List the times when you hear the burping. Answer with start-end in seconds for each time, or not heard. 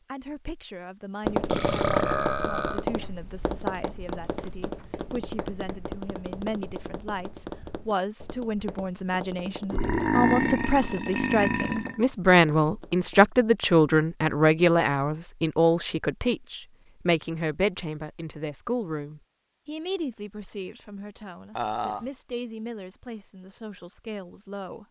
1.4-2.9, 9.7-12.0, 21.6-22.1.